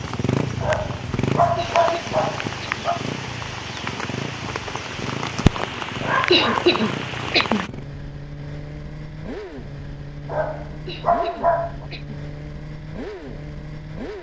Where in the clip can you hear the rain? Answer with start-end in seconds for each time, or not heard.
0.0-7.7.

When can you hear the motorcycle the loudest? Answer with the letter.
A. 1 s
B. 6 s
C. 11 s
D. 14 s
A.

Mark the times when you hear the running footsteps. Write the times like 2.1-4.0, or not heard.
not heard.